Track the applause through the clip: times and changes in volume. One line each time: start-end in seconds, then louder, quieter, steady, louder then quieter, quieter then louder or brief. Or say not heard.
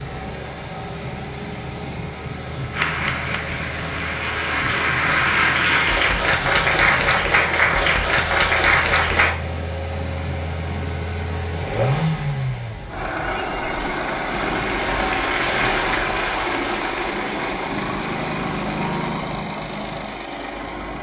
2.7-9.3 louder
13.2-19.1 louder then quieter.